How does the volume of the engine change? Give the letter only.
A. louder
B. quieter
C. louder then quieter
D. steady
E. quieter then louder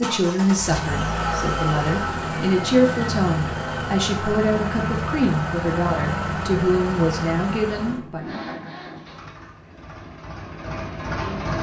B.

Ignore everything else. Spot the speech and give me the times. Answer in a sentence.
The speech can be heard from 0.0 to 8.4 s.